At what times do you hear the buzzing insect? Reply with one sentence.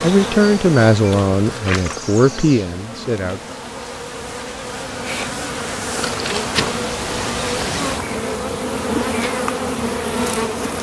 The buzzing insect can be heard from 0.0 to 10.7 s.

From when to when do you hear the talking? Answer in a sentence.
You can hear the talking from 0.0 to 3.5 s.